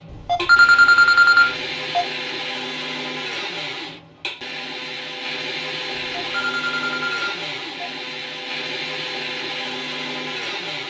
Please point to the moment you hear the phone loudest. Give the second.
1 s.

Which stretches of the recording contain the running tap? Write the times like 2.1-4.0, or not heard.
not heard.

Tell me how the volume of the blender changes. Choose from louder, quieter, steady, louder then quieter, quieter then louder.
steady.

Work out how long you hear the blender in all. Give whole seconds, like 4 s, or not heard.
11 s.